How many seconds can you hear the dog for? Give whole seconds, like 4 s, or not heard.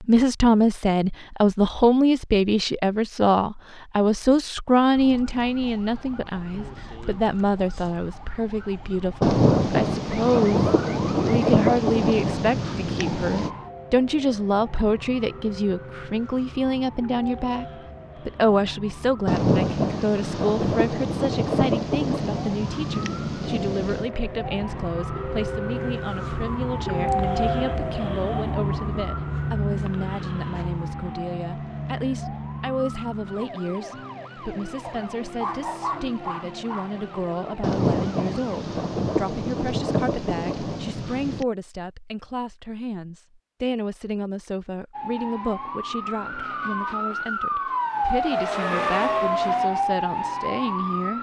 2 s.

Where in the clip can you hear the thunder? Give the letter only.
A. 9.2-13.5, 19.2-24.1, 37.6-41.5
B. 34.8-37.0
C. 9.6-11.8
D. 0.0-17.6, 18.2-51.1
A.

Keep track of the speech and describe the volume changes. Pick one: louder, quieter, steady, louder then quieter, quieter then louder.
quieter.